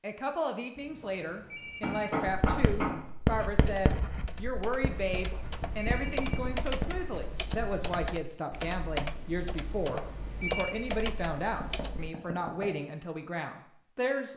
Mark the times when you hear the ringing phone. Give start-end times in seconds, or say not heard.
0.8-2.1, 5.2-6.4, 9.7-10.8.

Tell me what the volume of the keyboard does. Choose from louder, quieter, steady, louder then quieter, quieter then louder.
louder.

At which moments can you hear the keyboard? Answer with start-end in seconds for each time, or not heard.
3.5-12.2.